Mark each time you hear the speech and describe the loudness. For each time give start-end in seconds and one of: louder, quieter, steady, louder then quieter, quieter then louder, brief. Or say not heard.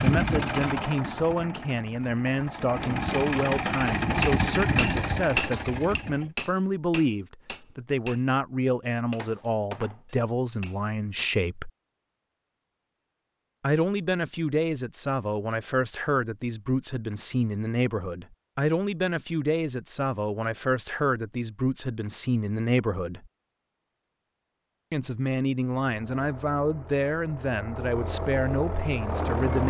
0.0-11.7 steady
13.6-23.3 steady
24.9-29.6 steady.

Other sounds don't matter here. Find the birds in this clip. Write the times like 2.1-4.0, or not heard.
not heard.